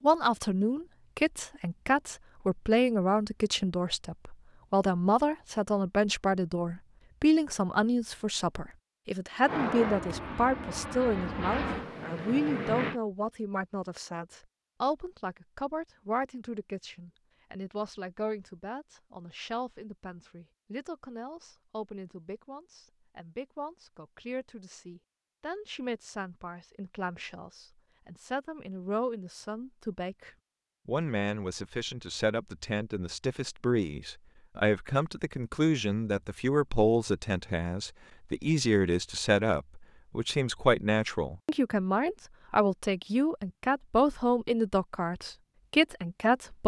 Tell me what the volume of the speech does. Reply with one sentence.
The loudness of the speech goes down, then up.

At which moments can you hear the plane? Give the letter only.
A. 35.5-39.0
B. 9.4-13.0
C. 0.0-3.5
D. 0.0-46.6
B.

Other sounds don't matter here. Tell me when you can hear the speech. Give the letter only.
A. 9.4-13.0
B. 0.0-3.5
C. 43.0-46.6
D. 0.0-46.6
D.